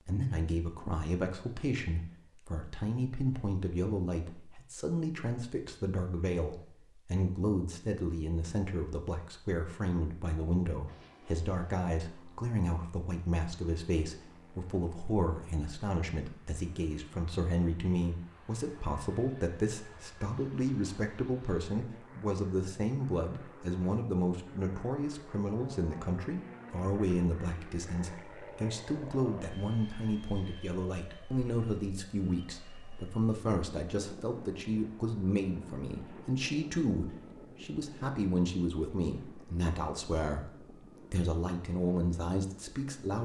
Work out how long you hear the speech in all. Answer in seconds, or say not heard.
43 s.